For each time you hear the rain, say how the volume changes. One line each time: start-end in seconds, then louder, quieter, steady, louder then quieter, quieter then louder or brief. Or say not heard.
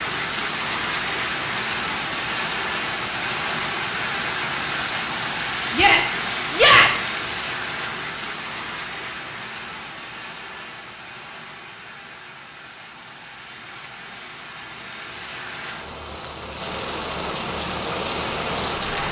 0.0-19.0 quieter then louder.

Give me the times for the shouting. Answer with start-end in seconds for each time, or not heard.
5.7-6.9.